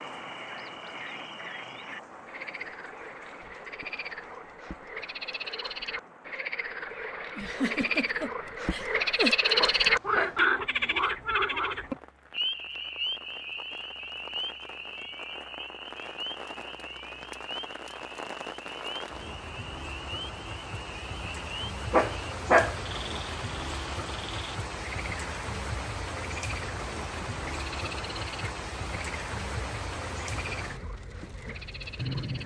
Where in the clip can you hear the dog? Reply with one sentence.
You can hear the dog from 9.6 to 10.4 s and from 21.9 to 22.8 s.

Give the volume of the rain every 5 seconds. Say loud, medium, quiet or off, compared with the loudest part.
medium, quiet, quiet, medium, loud, loud, loud.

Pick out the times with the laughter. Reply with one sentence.
You can hear the laughter from 7.3 to 9.3 s.